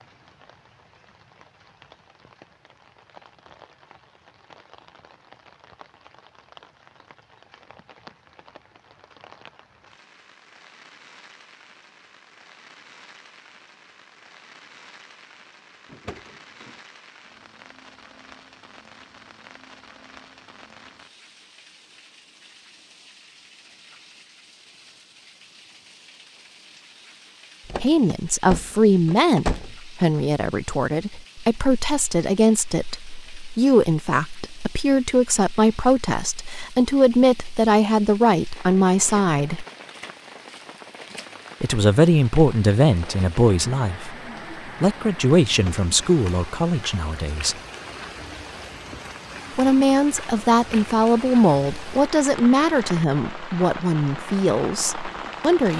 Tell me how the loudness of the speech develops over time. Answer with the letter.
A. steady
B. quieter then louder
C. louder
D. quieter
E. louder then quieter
A.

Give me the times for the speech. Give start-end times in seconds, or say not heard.
27.8-39.6, 41.6-47.5, 49.5-55.7.